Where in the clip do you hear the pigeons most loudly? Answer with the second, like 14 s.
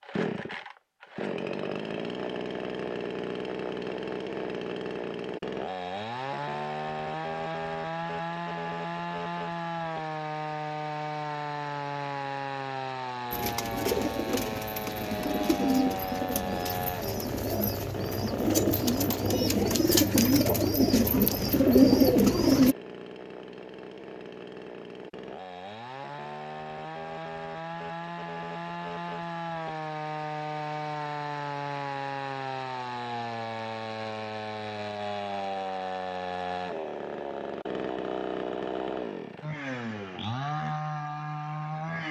22 s.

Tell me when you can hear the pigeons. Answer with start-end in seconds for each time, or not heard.
13.3-22.8.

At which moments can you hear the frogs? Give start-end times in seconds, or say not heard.
not heard.